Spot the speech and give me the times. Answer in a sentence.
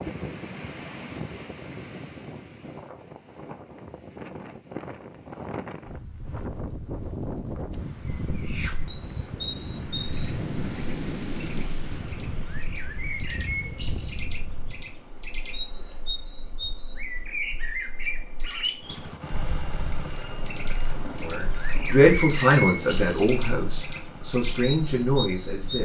You can hear the speech from 21.2 to 25.8 s.